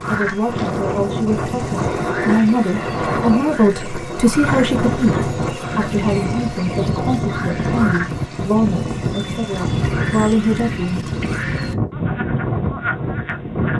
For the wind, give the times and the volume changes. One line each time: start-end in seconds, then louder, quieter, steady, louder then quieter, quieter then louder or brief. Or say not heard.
0.0-13.7 steady.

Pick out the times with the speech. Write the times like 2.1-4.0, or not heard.
0.0-11.1.